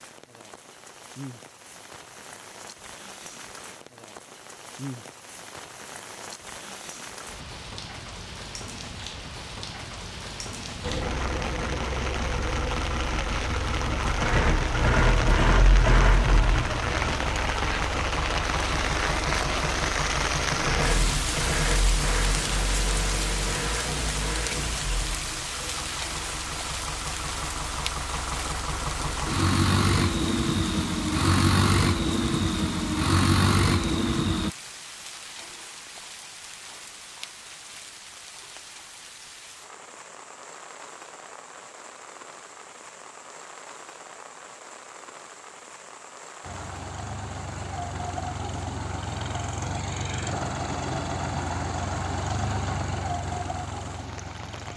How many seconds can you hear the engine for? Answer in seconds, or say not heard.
32 s.